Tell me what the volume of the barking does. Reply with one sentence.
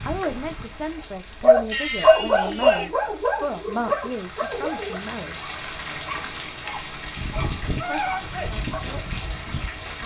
The loudness of the barking goes down.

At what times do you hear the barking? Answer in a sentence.
You can hear the barking from 0.2 to 8.8 s.